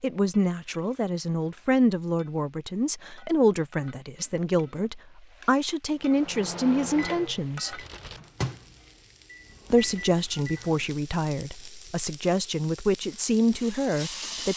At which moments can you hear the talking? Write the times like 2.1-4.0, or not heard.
0.0-7.8, 9.7-14.5.